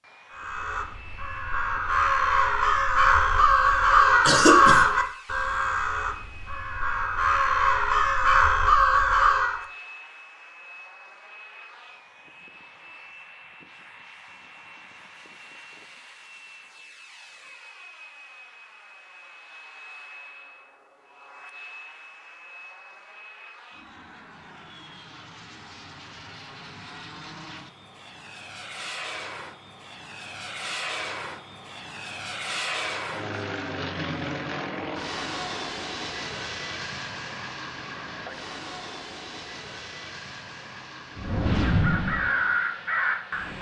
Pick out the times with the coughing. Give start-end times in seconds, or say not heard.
3.5-4.9.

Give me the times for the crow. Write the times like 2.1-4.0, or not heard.
0.3-9.7, 41.1-43.5.